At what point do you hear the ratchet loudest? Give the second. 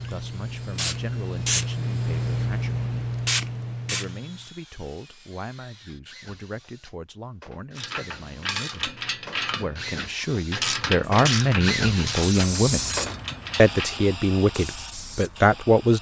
11 s.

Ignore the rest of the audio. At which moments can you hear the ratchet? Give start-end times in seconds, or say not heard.
7.8-13.9.